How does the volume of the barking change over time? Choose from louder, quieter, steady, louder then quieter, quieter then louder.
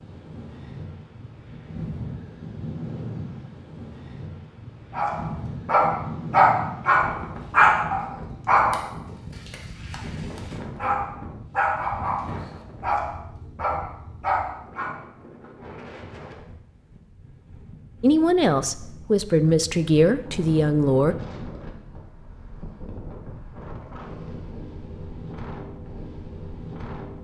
quieter then louder.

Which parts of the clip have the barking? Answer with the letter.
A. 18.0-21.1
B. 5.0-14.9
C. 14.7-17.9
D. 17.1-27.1
B.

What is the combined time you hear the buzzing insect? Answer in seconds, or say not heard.
not heard.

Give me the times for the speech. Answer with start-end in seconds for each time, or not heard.
18.0-21.1.